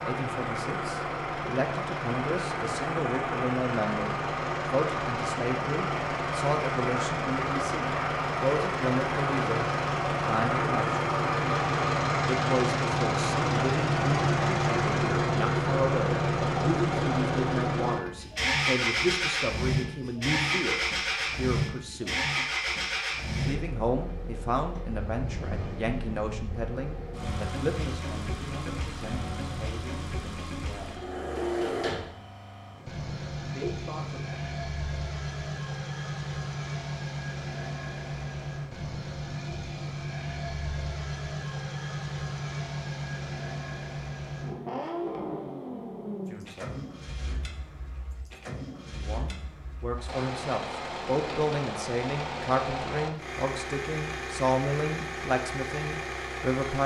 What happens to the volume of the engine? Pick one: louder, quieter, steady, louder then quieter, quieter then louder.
quieter.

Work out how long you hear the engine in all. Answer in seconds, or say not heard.
57 s.